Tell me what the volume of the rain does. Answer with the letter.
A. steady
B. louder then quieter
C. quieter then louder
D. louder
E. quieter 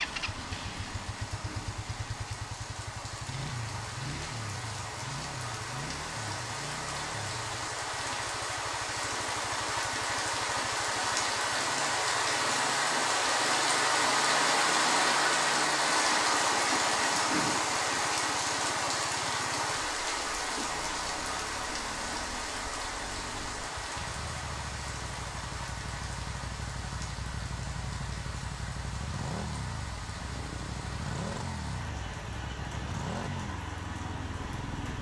B.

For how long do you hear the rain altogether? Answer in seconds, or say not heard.
35 s.